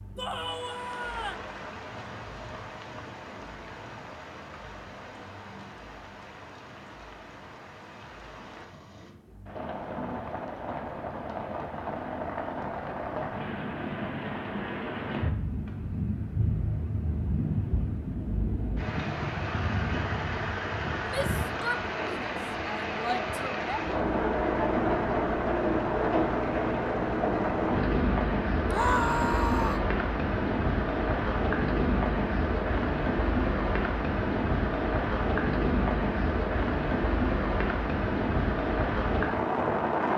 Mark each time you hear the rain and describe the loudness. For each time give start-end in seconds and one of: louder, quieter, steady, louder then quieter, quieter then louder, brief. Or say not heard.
0.0-40.1 louder.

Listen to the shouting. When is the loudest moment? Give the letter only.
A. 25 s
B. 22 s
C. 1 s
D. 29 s
D.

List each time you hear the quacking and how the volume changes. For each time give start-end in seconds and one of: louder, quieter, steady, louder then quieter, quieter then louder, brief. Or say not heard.
not heard.